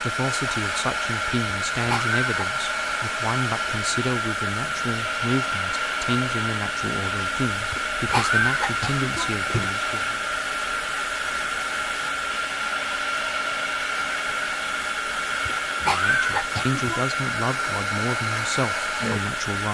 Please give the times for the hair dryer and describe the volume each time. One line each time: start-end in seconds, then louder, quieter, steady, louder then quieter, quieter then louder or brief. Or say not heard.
0.0-19.6 steady.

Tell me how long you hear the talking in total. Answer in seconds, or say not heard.
14 s.